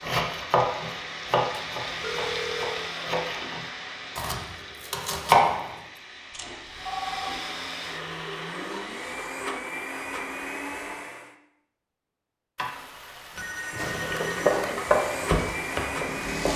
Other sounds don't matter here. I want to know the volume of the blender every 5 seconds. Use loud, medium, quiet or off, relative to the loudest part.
medium, loud, loud, loud.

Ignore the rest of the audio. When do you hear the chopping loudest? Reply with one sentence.
The loudest moment of the chopping is at 5 seconds.